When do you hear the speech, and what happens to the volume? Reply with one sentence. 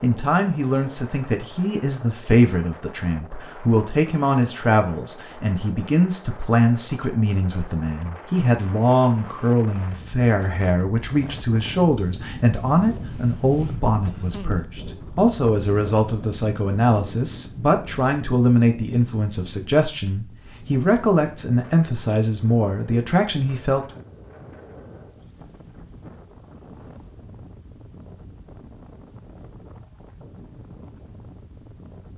The speech can be heard from 0.0 to 23.8 s, at a steady volume.